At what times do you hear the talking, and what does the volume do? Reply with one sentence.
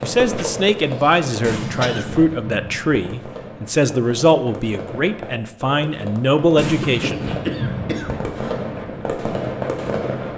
You can hear the talking from 0.0 to 7.2 s, at a steady volume.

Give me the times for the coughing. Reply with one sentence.
You can hear the coughing from 0.3 to 2.0 s and from 6.5 to 8.6 s.